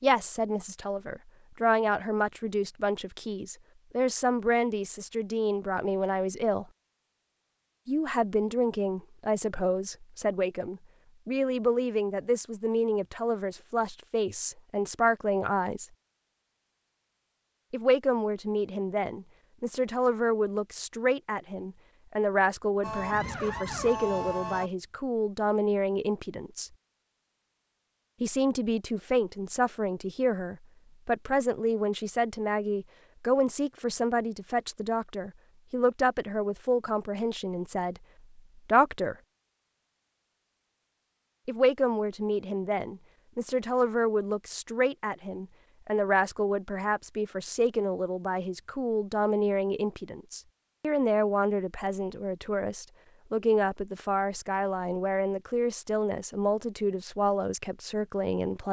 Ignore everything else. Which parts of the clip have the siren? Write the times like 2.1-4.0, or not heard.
22.8-24.7.